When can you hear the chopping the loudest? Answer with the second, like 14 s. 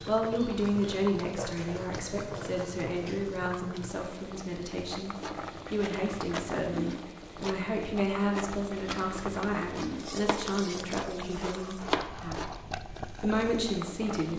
12 s.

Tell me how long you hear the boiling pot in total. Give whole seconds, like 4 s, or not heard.
14 s.